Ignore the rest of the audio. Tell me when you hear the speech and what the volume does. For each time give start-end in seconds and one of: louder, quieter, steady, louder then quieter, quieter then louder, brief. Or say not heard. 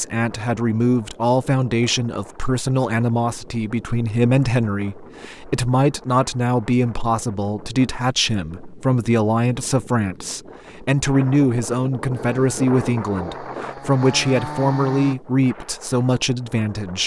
0.0-17.0 steady.